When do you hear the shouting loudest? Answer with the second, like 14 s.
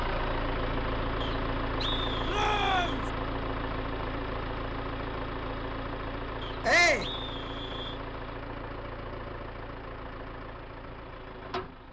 7 s.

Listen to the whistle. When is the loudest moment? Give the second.
2 s.